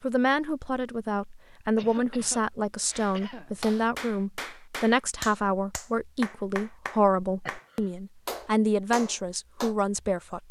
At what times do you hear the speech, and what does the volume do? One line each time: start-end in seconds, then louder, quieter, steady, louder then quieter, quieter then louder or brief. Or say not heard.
0.0-10.4 steady.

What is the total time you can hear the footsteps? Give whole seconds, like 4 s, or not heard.
not heard.